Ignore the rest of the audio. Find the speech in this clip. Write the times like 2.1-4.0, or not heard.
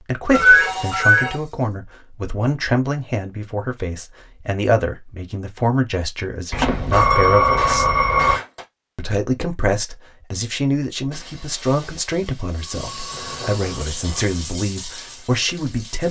0.1-7.8, 8.9-16.0.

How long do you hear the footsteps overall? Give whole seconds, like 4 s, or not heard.
not heard.